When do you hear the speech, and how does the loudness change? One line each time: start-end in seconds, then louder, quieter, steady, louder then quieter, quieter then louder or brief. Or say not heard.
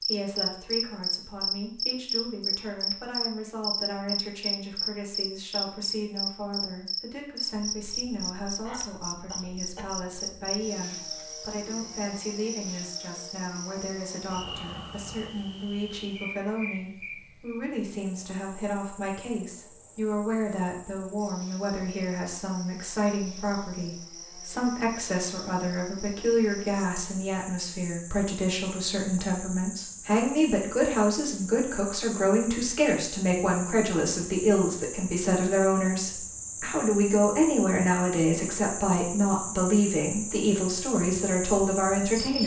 0.0-42.4 louder.